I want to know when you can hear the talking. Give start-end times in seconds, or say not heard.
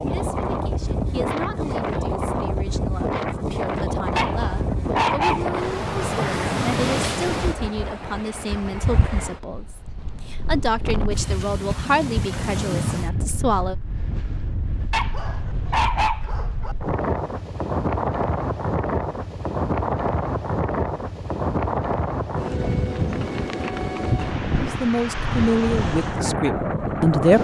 0.0-13.8, 24.6-27.3.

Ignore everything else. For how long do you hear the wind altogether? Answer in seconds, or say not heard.
27 s.